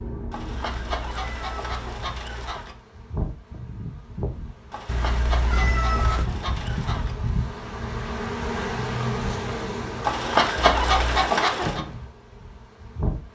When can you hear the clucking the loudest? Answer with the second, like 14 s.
11 s.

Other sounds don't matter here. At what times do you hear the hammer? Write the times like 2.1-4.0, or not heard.
not heard.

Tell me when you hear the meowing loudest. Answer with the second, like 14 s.
6 s.